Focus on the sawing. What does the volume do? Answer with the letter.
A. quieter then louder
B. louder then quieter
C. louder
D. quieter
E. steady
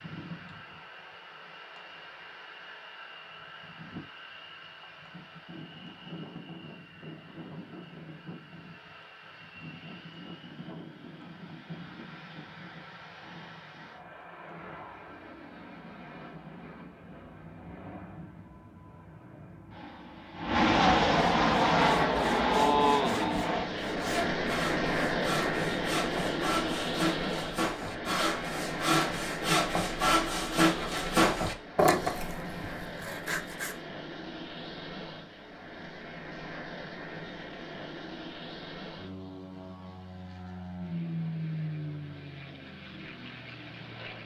C.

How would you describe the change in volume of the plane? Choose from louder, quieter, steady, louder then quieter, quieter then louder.
louder then quieter.